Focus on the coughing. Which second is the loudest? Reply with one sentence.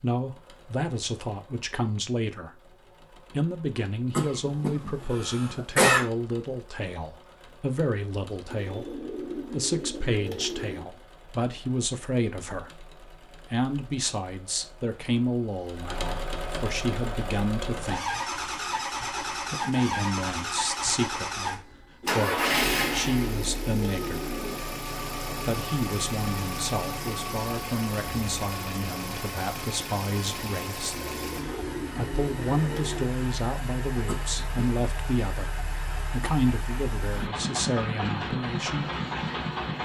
The loudest moment of the coughing is at 6 seconds.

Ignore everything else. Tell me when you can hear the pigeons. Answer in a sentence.
The pigeons can be heard from 8.4 to 10.9 s, from 22.0 to 24.6 s and from 30.9 to 33.1 s.